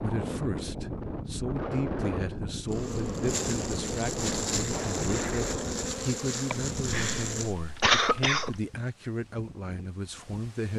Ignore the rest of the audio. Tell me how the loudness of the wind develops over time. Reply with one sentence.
The loudness of the wind goes down.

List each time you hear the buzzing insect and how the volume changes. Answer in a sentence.
The buzzing insect can be heard from 2.6 to 7.5 s, at a steady volume.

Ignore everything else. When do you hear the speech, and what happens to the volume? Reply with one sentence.
You can hear the speech from 0.0 to 10.7 s, at a steady volume.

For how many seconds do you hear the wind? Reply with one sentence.
You can hear the wind for 11 seconds altogether.